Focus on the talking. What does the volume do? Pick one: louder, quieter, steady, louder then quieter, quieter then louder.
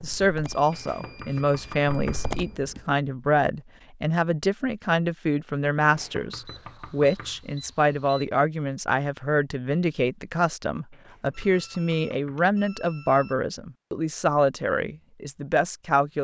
steady.